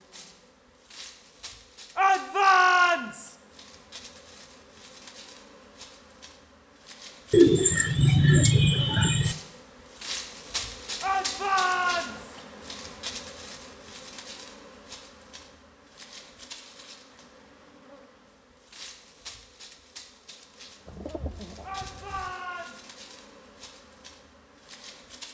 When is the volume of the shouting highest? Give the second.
3 s.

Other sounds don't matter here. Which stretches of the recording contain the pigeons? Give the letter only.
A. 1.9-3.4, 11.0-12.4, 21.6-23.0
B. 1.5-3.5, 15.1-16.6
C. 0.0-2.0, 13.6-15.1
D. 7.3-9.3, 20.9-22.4
D.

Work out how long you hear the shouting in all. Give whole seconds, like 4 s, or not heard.
4 s.